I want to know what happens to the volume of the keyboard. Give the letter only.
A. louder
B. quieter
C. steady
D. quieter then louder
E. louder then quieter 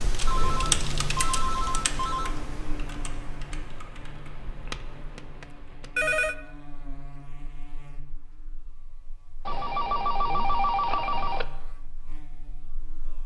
B.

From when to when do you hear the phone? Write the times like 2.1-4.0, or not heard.
0.2-2.4, 4.7-6.3, 9.4-11.4.